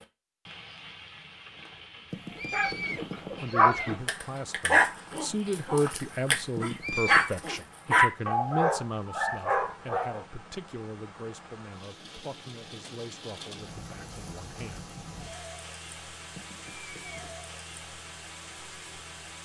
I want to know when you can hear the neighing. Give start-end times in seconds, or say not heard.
2.1-4.0, 6.5-7.3, 16.4-17.3.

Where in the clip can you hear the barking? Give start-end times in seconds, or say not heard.
2.4-10.2.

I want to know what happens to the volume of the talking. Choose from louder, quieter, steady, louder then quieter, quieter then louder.
quieter.